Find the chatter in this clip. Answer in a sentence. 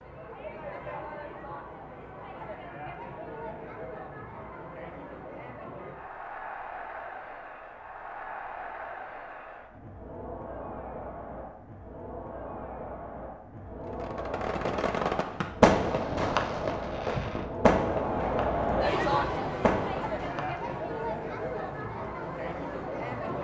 You can hear the chatter from 0.0 to 23.3 s.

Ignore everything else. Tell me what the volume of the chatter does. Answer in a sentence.
The volume of the chatter goes up.